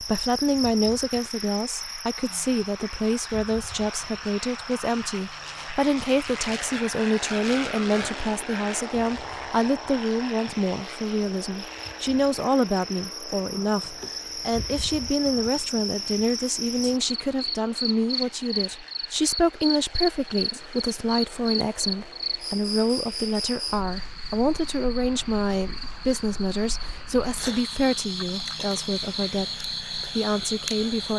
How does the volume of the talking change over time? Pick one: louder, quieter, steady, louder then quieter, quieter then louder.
steady.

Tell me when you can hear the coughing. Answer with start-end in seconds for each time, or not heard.
not heard.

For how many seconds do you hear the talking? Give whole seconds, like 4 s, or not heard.
31 s.